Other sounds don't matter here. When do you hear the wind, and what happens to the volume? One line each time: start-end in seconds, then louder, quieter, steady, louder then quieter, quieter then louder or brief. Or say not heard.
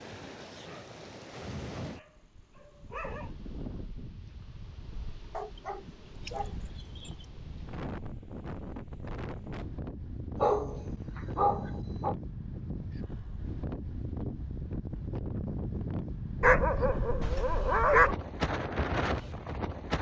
0.0-19.9 louder.